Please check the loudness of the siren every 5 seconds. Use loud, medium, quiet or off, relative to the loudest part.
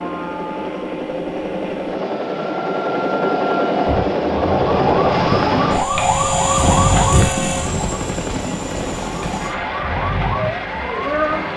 medium, loud, loud.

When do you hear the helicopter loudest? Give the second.
5 s.